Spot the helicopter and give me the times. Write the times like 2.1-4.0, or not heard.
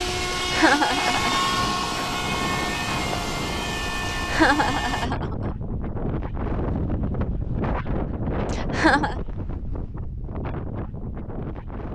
0.0-5.1.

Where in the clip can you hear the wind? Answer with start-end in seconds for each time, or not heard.
0.0-11.9.